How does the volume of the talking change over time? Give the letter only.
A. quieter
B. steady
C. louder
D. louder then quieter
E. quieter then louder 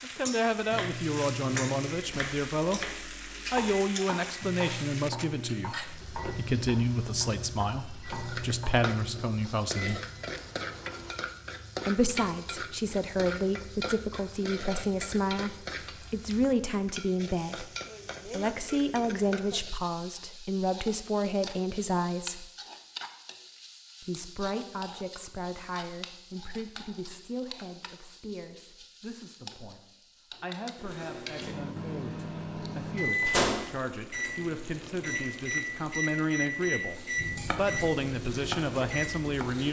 E.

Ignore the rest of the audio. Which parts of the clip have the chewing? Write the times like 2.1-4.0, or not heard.
not heard.